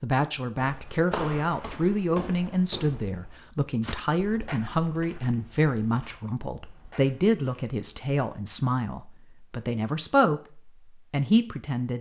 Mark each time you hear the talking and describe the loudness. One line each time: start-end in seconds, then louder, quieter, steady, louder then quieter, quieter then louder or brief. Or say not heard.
0.0-11.9 steady.